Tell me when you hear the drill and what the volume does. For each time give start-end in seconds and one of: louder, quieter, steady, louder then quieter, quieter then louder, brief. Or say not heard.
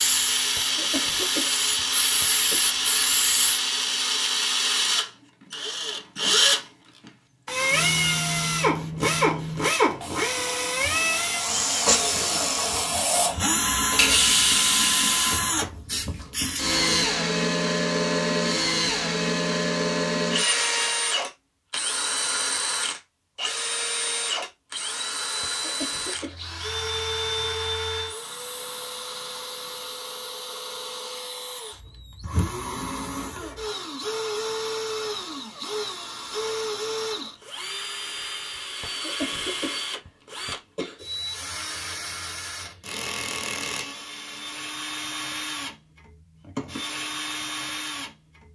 0.0-48.4 quieter.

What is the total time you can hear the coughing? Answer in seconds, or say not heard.
5 s.